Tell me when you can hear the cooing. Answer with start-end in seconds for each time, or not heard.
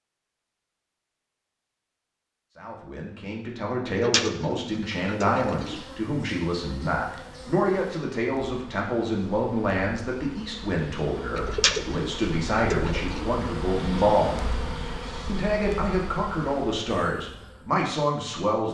3.9-5.8, 11.3-13.3.